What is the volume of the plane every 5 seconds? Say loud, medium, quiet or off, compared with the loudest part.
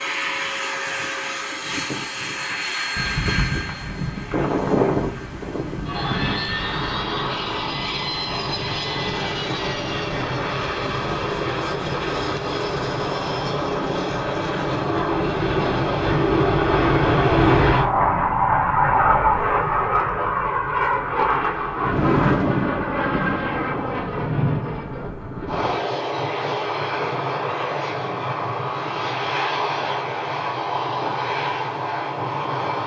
medium, medium, medium, loud, medium, medium, medium.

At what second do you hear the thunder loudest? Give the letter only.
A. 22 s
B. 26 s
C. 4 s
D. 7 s
A.